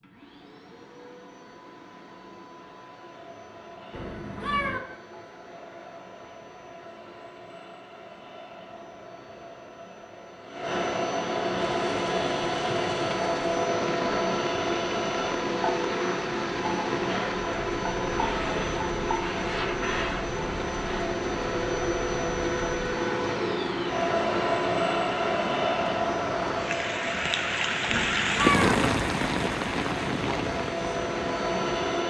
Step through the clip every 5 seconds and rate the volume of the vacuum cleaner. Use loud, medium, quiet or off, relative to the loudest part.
quiet, quiet, loud, loud, loud, loud, loud.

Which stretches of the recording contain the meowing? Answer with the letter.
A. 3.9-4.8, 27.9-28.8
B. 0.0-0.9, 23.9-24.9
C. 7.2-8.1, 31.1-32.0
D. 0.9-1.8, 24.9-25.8
A.